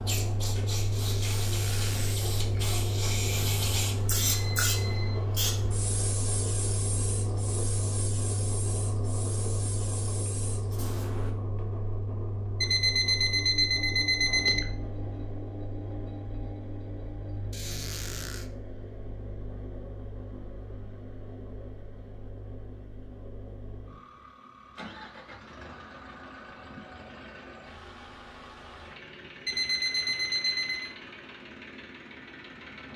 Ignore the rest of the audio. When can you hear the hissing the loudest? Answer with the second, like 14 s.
4 s.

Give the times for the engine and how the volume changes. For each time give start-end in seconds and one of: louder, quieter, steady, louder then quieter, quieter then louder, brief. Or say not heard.
0.0-32.9 quieter.